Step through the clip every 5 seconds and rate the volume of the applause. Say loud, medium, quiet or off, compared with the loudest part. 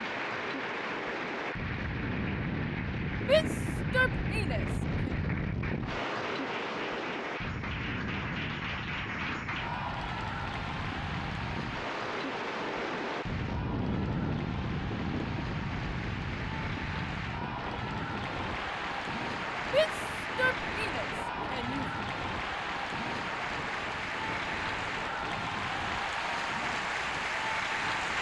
medium, medium, medium, medium, loud, loud.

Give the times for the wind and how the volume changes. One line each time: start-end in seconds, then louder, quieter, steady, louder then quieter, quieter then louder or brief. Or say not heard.
0.0-28.1 quieter.